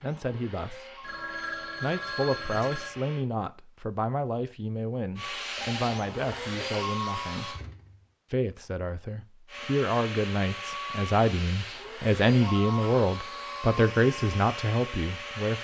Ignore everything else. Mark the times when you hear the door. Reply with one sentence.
You can hear the door from 7.5 to 8.1 s.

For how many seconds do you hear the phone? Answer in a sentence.
The phone can be heard for 4 seconds in total.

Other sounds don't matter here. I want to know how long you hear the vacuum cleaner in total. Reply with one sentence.
You can hear the vacuum cleaner for 12 seconds altogether.